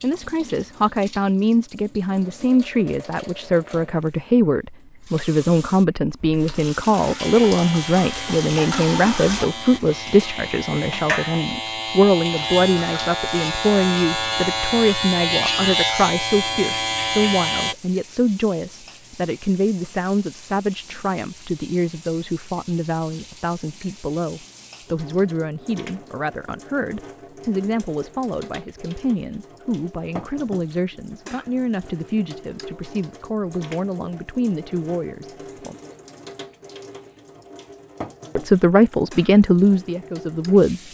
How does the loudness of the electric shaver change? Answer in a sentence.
The loudness of the electric shaver goes up.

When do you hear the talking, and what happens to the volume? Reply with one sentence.
You can hear the talking from 0.0 to 35.8 s, getting quieter; and briefly from 38.4 to 40.8 s.